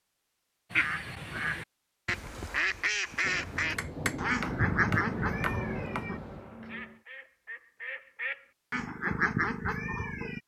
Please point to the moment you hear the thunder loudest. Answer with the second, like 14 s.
5 s.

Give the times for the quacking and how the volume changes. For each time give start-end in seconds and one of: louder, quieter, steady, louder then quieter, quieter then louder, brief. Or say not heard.
0.7-10.4 quieter then louder.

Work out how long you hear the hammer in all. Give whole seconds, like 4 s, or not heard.
3 s.